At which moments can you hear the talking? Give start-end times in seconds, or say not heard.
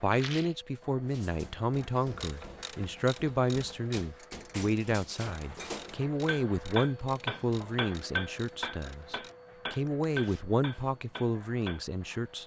0.0-12.4.